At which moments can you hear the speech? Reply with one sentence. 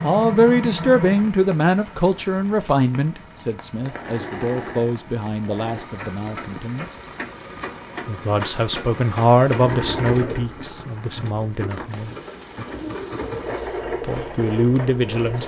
The speech can be heard from 0.0 to 7.0 s, from 8.1 to 12.1 s and from 14.0 to 15.4 s.